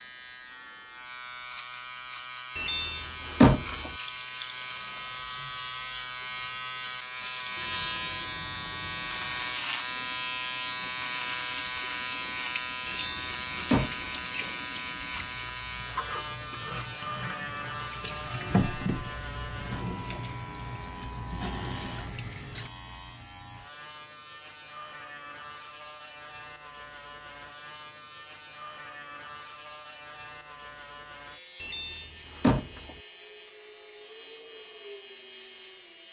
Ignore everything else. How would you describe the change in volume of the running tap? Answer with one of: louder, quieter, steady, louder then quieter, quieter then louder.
louder.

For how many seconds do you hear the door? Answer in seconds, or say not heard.
4 s.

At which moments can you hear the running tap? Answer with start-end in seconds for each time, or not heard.
4.0-22.7.